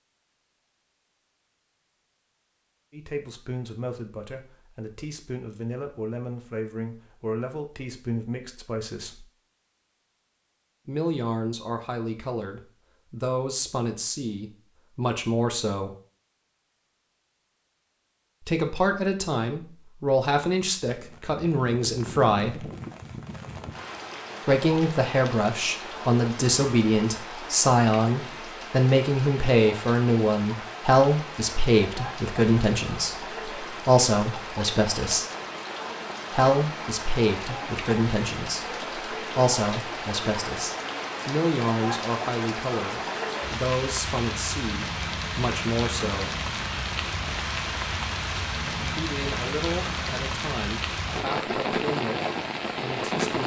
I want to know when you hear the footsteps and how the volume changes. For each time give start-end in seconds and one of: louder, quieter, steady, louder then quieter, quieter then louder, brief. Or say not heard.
not heard.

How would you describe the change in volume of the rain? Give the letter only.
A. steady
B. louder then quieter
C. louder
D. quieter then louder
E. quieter
C.